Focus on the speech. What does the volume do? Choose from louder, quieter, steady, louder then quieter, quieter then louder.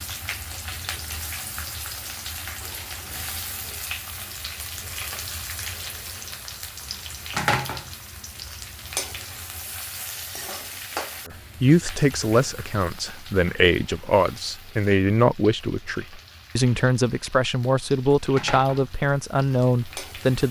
steady.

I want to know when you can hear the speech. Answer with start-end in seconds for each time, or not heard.
11.2-20.4.